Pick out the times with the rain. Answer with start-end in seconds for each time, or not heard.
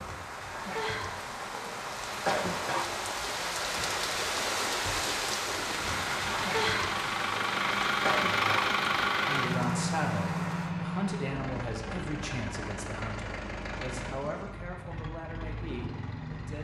0.0-10.8.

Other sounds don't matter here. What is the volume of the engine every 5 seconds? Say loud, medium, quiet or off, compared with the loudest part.
off, loud, medium, medium.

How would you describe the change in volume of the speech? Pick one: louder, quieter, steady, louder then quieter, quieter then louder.
quieter.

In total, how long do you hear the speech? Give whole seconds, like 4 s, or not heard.
7 s.